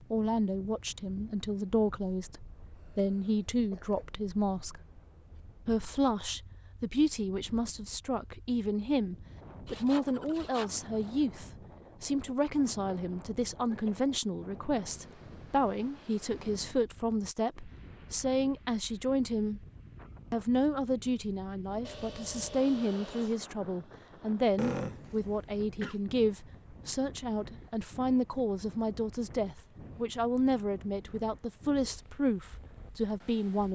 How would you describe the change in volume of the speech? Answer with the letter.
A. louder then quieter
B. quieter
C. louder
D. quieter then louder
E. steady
E.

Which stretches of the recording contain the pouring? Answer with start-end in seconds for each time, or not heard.
not heard.